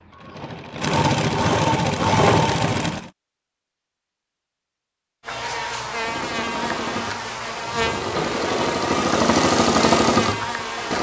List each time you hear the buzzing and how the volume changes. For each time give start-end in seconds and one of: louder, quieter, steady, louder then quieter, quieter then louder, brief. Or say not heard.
5.2-10.9 steady.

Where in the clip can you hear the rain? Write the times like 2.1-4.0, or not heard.
not heard.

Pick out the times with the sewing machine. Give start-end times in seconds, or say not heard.
0.0-3.1, 5.9-10.9.